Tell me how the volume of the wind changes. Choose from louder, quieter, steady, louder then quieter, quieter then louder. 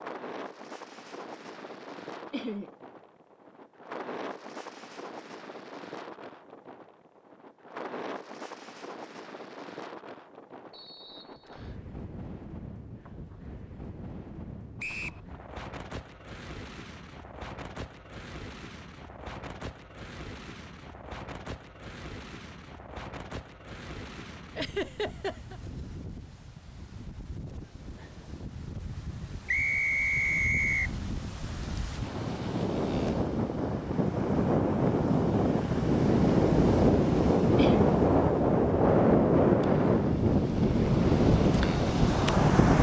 louder.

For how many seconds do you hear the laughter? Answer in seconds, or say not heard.
2 s.